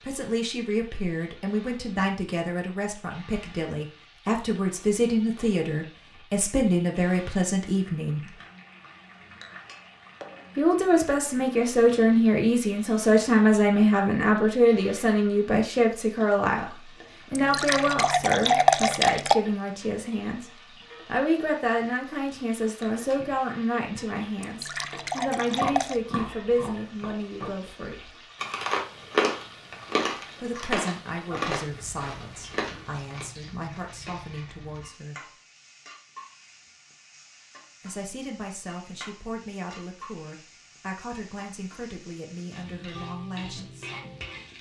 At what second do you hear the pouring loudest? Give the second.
19 s.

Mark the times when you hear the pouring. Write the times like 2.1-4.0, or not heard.
17.4-19.4, 24.4-26.0.